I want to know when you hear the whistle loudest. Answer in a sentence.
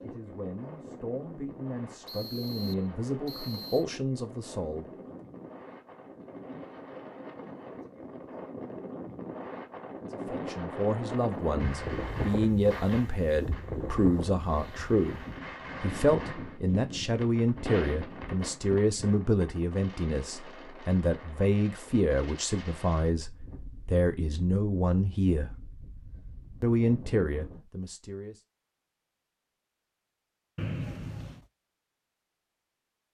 The volume of the whistle peaks at 31 seconds.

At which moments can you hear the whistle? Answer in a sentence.
You can hear the whistle from 2.0 to 3.9 s and from 30.6 to 31.4 s.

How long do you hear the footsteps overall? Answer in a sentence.
The footsteps can't be heard in this clip.